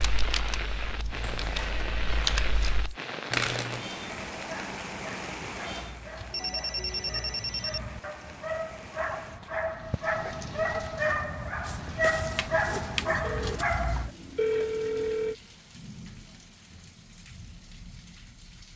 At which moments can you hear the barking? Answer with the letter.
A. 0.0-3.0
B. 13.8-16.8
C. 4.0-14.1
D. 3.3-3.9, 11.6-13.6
C.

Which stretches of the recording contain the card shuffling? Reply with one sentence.
You can hear the card shuffling from 3.3 to 3.9 s and from 11.6 to 13.6 s.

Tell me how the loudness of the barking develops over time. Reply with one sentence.
The volume of the barking goes up.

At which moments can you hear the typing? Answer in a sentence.
The typing can be heard from 0.0 to 3.0 s.